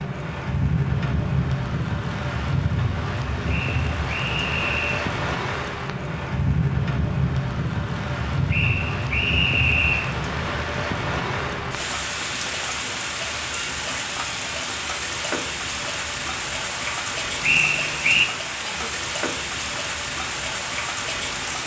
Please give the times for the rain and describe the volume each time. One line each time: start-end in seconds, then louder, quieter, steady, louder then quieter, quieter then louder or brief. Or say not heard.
0.0-21.6 steady.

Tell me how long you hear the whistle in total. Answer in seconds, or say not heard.
4 s.